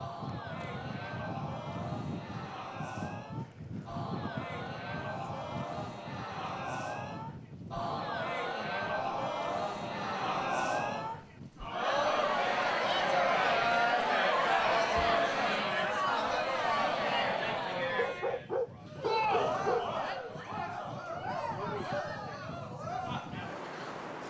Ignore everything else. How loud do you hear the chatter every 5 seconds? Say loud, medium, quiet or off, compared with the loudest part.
quiet, medium, loud, loud, medium.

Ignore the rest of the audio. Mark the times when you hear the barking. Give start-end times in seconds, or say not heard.
17.9-19.9.